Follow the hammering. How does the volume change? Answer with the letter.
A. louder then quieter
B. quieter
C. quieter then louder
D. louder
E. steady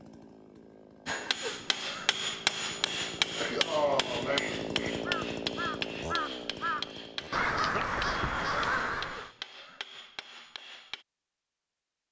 B.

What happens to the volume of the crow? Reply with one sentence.
The loudness of the crow goes up.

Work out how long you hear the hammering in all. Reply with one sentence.
You can hear the hammering for 10 seconds altogether.